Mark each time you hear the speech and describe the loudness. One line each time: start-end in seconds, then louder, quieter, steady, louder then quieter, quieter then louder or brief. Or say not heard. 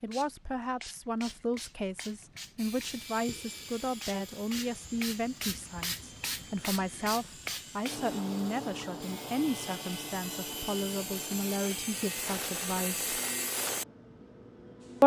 0.0-13.1 steady.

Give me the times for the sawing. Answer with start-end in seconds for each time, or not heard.
2.5-13.8.